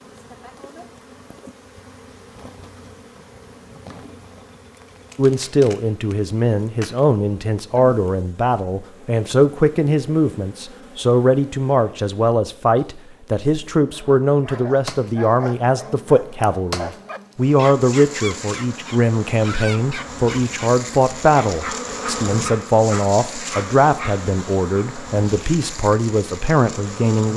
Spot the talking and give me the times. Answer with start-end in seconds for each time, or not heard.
5.2-27.3.